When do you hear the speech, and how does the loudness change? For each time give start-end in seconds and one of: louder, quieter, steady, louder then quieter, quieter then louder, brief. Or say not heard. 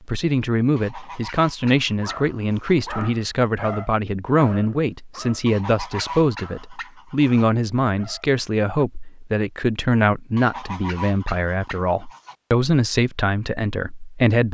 0.1-14.5 steady.